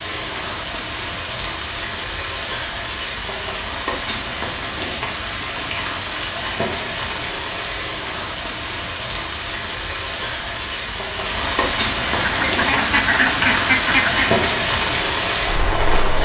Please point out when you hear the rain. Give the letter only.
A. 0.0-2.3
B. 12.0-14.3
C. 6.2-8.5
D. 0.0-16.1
D.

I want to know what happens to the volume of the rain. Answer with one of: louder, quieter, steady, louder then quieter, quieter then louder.
louder.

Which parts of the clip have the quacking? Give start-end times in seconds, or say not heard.
12.0-14.3.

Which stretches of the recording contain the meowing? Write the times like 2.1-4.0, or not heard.
not heard.